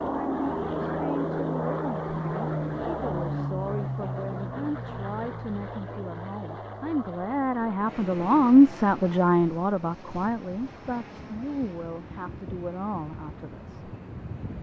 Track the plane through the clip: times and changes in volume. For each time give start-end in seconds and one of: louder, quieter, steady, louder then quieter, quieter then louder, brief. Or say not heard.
0.0-14.5 quieter.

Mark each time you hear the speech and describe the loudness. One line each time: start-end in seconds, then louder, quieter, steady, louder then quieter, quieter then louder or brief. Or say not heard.
0.0-13.8 louder then quieter.